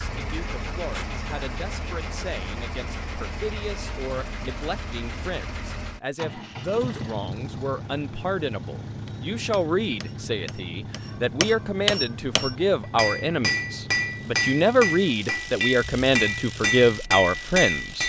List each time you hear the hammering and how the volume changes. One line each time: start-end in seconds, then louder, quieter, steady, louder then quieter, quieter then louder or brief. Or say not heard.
9.1-18.0 louder.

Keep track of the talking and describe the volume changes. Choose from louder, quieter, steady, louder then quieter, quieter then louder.
louder.